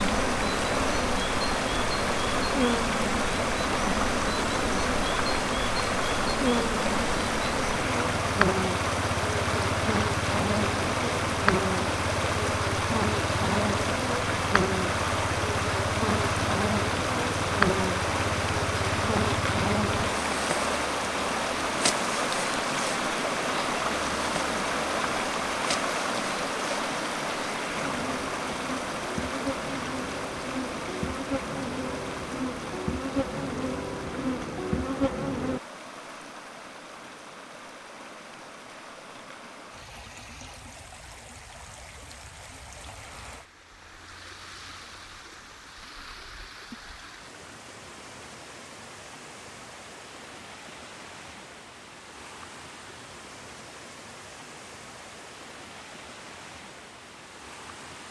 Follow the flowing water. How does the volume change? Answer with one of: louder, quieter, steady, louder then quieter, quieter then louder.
quieter.